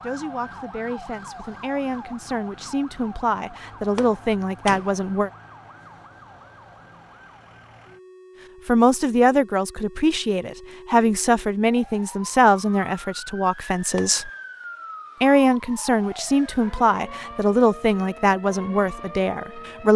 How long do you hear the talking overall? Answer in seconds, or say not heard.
16 s.